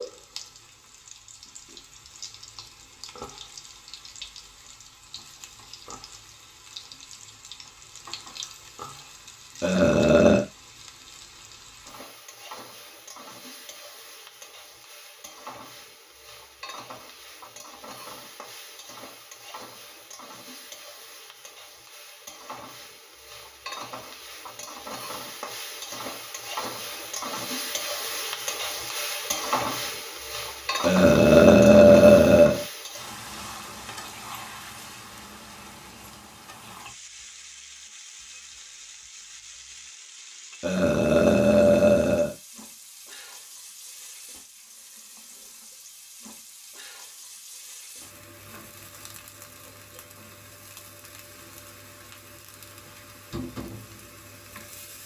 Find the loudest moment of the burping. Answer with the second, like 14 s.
32 s.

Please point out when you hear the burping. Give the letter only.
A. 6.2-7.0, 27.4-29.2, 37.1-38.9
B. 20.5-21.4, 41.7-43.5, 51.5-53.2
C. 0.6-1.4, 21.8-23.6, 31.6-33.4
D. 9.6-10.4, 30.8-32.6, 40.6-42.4
D.